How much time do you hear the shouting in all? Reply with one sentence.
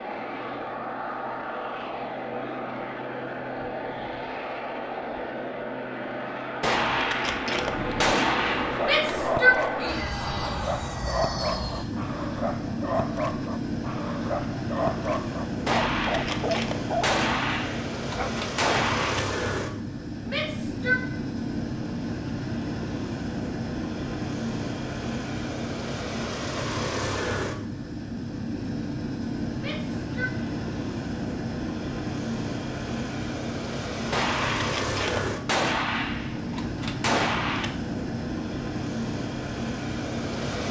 You can hear the shouting for 3 seconds altogether.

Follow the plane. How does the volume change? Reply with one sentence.
The loudness of the plane stays about the same.